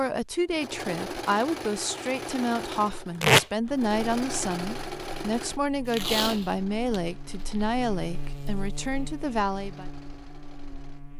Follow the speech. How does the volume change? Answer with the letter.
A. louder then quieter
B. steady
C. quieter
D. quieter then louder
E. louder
B.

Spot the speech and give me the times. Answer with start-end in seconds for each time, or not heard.
0.0-9.9.